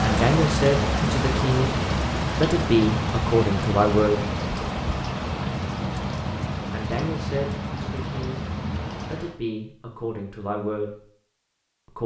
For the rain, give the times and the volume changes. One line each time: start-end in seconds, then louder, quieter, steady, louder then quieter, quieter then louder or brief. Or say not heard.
0.0-9.4 quieter.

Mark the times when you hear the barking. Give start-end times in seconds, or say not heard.
not heard.